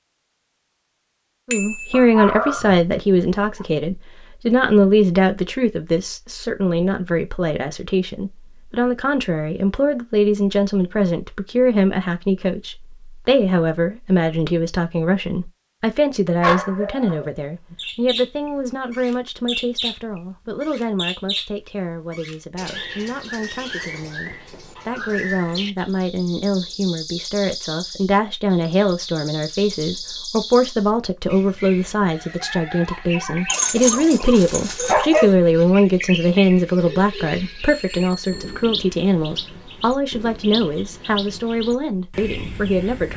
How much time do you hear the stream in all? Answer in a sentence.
You can't hear the stream here.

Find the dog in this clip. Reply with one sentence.
You can hear the dog from 1.9 to 2.8 s, from 16.4 to 17.8 s and from 33.5 to 35.2 s.